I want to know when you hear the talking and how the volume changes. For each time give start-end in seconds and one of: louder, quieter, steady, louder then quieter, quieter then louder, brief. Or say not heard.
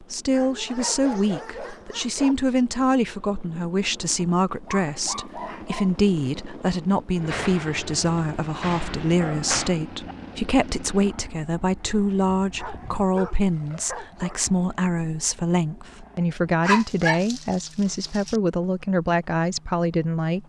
0.0-20.4 steady.